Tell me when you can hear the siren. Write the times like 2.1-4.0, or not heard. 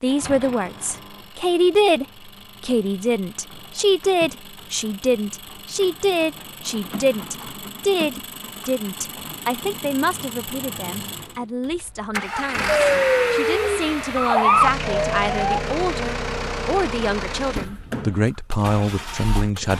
12.7-15.6.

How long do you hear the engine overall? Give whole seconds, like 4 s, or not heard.
20 s.